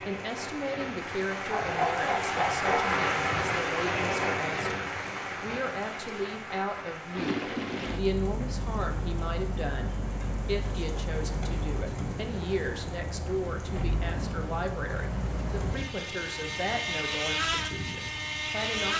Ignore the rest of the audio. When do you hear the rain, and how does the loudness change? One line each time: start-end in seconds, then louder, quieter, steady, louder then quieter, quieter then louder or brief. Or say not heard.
0.0-18.9 quieter.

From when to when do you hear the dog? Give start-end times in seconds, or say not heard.
1.4-2.9.